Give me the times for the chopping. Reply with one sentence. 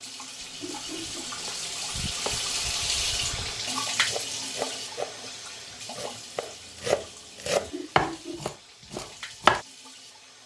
The chopping can be heard from 0.4 to 9.7 s.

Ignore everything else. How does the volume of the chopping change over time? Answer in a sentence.
The volume of the chopping goes up.